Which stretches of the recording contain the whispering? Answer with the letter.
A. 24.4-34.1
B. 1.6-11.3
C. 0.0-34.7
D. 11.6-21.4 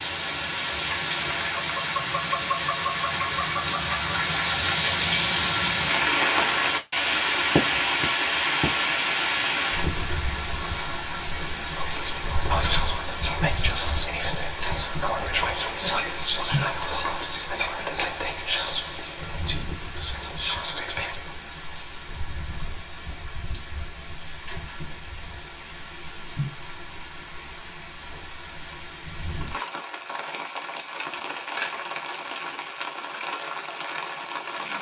D.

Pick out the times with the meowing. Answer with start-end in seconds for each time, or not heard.
not heard.